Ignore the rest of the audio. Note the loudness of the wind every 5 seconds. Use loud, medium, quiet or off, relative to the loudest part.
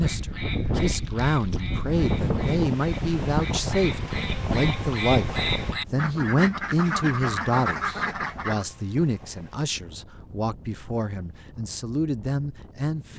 loud, medium, quiet.